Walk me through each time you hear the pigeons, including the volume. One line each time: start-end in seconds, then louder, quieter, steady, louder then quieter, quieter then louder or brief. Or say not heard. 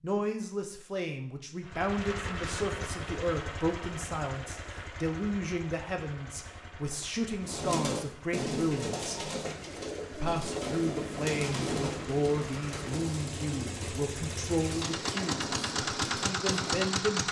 7.4-16.9 quieter.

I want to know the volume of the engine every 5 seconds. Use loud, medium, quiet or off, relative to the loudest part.
medium, quiet, medium, loud.